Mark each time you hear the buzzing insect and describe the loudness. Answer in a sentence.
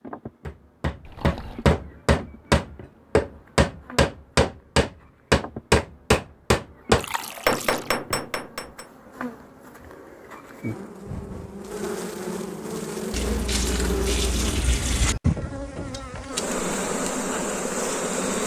The buzzing insect can be heard from 0.0 to 18.4 s, getting louder.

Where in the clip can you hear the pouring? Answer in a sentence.
The pouring can be heard from 1.1 to 1.7 s, from 7.0 to 7.9 s and from 13.1 to 15.2 s.